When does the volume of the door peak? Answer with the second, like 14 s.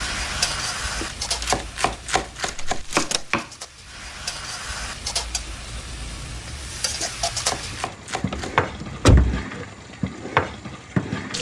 9 s.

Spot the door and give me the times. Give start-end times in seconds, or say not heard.
2.5-3.2, 8.3-9.3.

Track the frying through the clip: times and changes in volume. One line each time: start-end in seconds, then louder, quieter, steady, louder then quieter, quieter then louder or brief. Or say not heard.
0.0-11.3 quieter then louder.